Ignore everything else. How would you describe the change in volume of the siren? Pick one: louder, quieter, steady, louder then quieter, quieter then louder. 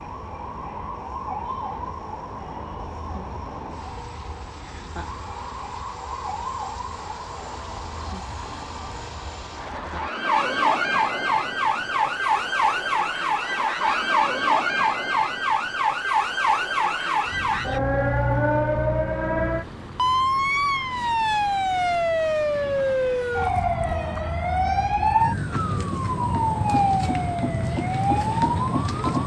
louder.